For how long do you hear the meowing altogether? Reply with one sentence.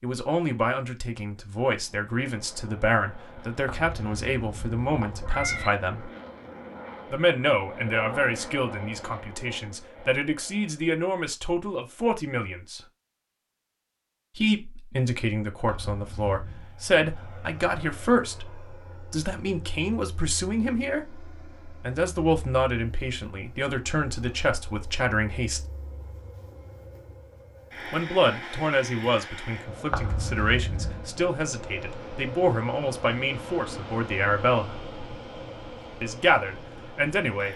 You can hear the meowing for 4 seconds altogether.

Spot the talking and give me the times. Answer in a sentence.
The talking can be heard from 0.0 to 6.1 s, from 7.1 to 12.8 s, from 14.3 to 25.6 s, from 27.9 to 34.8 s and from 36.0 to 37.5 s.